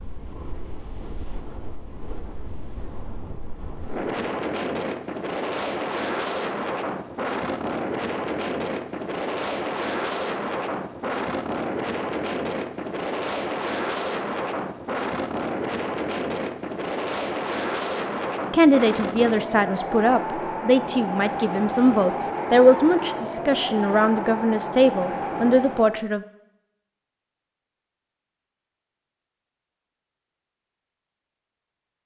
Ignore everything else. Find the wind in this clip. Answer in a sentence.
The wind can be heard from 0.0 to 26.1 s.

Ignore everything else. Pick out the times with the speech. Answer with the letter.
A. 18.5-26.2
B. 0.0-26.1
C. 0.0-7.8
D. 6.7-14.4
A.